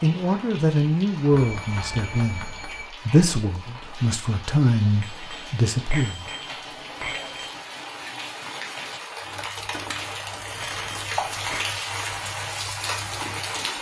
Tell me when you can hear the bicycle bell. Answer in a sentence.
The bicycle bell can be heard from 1.3 to 2.9 s, from 5.0 to 7.6 s and from 10.6 to 11.7 s.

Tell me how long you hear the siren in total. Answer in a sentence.
The siren can't be heard in this clip.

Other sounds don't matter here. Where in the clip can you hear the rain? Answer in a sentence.
You can hear the rain from 0.0 to 13.7 s.